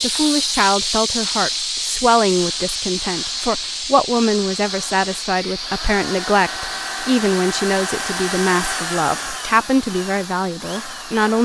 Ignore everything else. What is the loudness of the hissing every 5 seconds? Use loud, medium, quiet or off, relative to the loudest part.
loud, medium, quiet.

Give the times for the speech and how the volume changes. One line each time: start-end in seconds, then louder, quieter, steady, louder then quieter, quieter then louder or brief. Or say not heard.
0.0-11.4 steady.